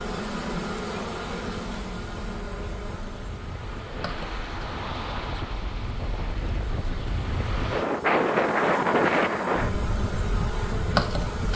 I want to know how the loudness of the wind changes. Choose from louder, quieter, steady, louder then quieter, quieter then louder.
louder.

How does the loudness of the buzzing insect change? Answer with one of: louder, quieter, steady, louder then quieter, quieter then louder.
quieter then louder.